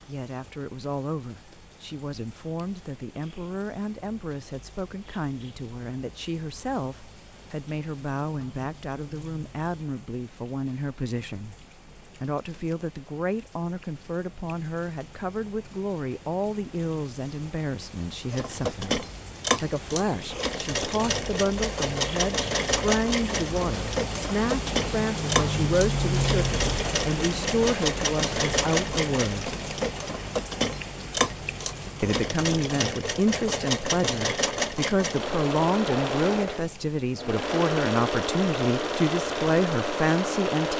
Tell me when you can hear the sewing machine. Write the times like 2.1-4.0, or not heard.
18.3-40.7.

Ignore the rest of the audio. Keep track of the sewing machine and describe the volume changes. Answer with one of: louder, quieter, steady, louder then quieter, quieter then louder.
steady.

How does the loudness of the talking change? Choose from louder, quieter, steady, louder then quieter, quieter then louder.
louder.